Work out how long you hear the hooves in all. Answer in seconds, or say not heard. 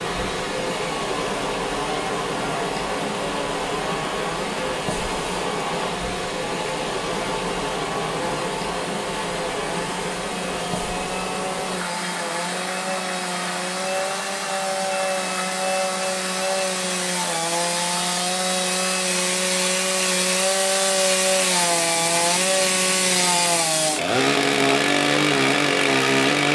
not heard.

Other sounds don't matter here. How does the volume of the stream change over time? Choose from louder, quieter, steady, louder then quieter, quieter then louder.
quieter.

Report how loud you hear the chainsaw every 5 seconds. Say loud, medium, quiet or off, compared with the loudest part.
quiet, quiet, medium, medium, loud, loud.